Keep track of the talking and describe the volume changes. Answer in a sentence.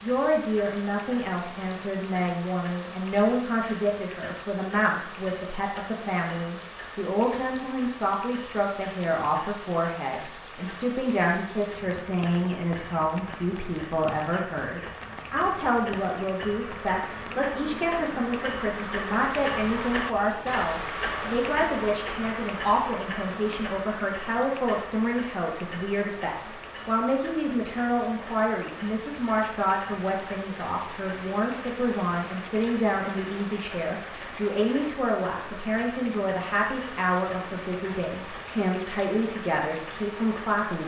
The volume of the talking stays about the same.